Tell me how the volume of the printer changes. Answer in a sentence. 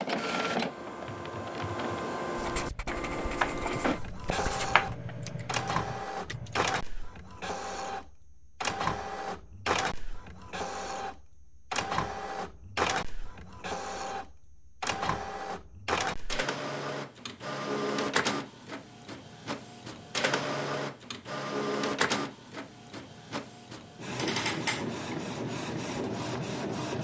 The loudness of the printer stays about the same.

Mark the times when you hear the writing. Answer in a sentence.
The writing can be heard from 2.4 to 5.0 s.